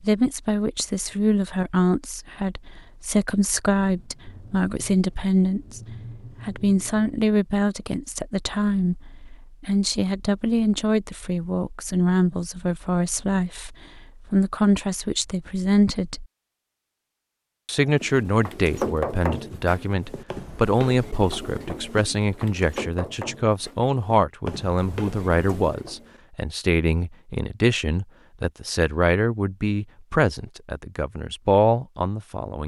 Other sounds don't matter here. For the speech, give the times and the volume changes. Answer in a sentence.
The speech can be heard from 0.0 to 16.2 s, at a steady volume; and from 17.6 to 32.6 s, at a steady volume.